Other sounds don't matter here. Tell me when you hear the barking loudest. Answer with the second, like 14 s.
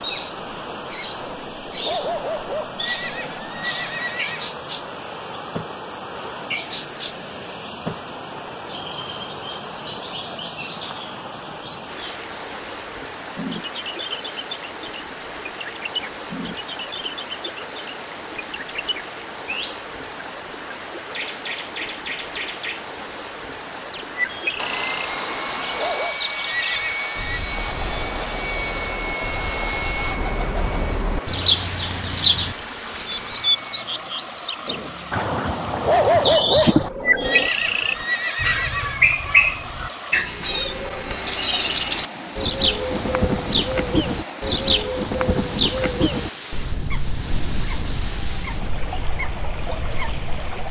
36 s.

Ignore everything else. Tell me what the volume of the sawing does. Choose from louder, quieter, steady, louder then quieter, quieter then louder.
quieter.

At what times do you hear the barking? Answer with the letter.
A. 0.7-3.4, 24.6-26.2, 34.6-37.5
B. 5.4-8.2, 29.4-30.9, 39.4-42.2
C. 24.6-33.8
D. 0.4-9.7
A.